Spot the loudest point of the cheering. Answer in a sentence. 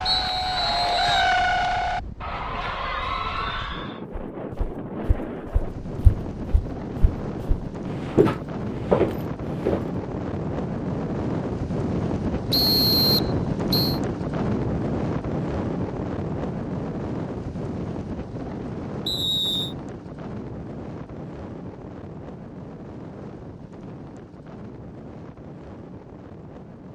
The loudest moment of the cheering is at 1 second.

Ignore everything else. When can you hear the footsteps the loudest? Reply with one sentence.
The loudest moment of the footsteps is at 9 seconds.